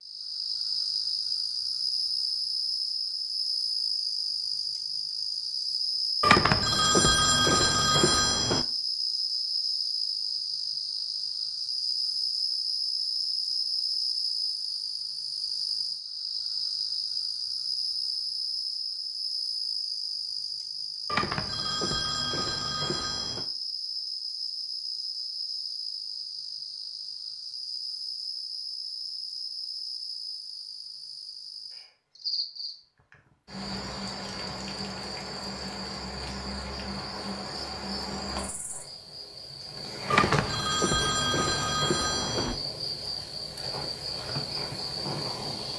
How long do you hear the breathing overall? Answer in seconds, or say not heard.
not heard.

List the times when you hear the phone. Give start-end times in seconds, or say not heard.
6.2-8.7, 21.1-23.4, 40.1-42.6.